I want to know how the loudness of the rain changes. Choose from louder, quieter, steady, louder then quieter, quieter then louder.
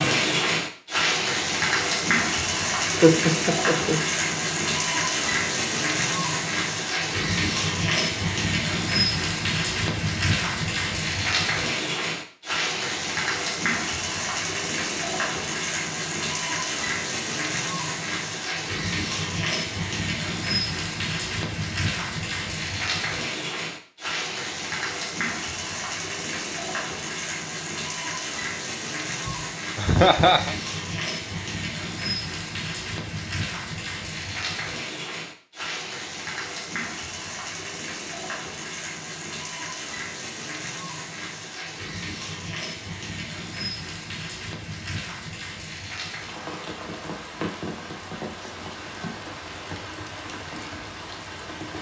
quieter.